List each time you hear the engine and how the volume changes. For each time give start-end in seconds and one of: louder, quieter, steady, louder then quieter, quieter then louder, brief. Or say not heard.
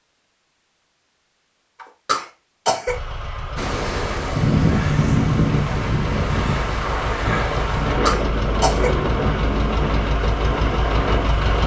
2.9-11.6 louder.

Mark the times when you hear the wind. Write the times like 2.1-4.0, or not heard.
3.5-11.6.